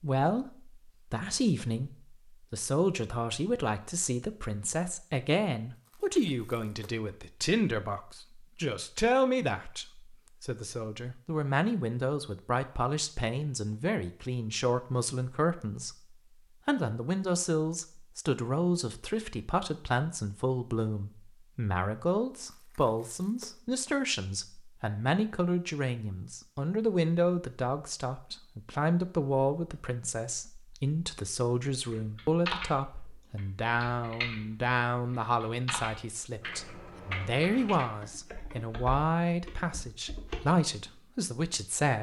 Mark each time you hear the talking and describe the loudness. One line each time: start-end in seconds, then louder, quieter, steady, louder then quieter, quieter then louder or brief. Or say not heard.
0.0-41.9 steady.